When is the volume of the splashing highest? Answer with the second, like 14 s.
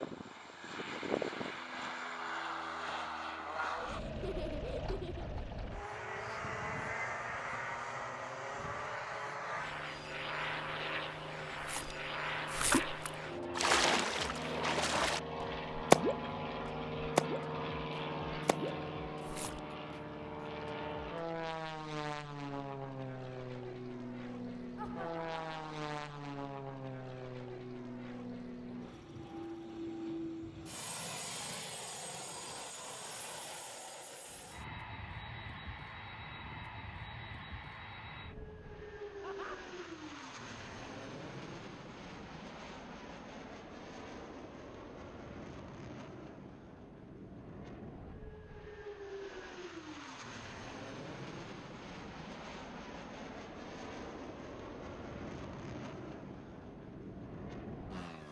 16 s.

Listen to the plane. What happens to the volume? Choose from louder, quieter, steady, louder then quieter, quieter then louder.
quieter.